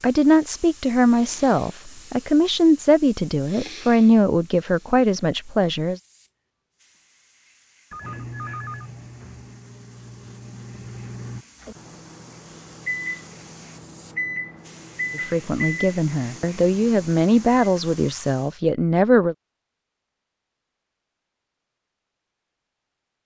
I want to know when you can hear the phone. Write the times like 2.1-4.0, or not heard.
7.9-9.4.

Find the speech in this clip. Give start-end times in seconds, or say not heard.
0.0-6.0, 15.2-19.4.